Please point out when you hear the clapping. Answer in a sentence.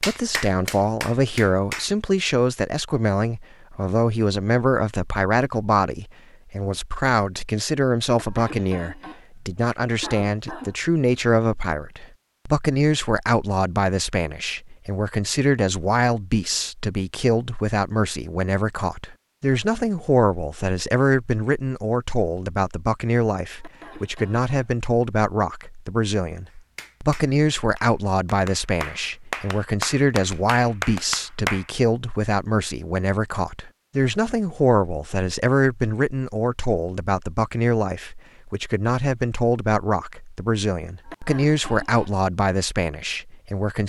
You can hear the clapping from 0.0 to 1.9 s and from 26.8 to 31.6 s.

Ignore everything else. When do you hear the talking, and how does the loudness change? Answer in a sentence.
The talking can be heard from 0.0 to 43.8 s, at a steady volume.